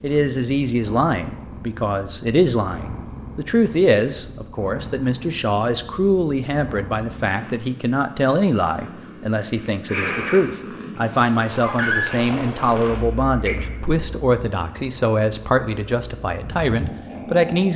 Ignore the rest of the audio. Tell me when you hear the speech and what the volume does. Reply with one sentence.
The speech can be heard from 0.0 to 17.7 s, at a steady volume.